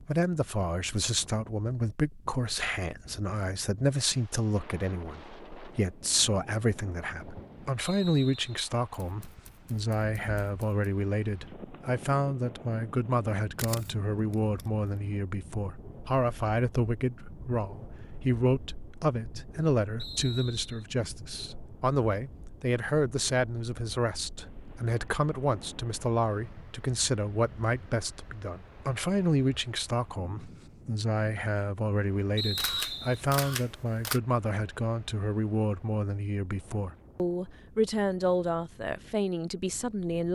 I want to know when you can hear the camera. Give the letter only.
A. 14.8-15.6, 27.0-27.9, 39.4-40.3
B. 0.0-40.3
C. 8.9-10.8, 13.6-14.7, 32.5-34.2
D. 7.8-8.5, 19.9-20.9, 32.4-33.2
C.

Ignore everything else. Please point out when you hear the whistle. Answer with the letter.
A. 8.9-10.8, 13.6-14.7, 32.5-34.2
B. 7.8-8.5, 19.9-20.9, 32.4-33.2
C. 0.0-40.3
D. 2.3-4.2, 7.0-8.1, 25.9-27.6
B.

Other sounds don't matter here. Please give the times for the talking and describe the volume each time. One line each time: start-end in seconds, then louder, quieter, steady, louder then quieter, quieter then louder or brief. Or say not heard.
0.0-40.3 steady.